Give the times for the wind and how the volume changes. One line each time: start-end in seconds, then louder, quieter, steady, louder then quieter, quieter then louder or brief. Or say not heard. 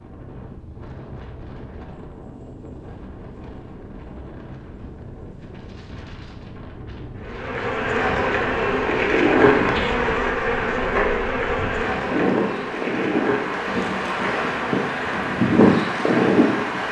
0.0-16.8 louder.